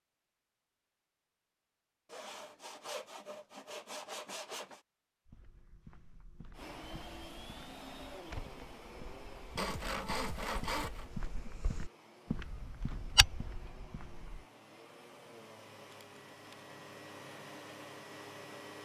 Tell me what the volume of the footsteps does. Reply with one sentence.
The volume of the footsteps goes up.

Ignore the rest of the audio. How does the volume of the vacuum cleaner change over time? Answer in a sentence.
The volume of the vacuum cleaner goes down, then up.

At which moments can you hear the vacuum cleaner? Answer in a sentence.
The vacuum cleaner can be heard from 6.5 to 18.8 s.